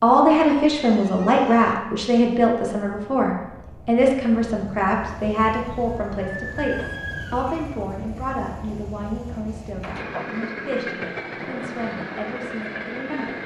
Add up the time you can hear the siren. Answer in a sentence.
The siren can be heard for 2 seconds in total.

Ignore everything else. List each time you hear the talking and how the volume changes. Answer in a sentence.
The talking can be heard from 0.0 to 13.4 s, getting quieter.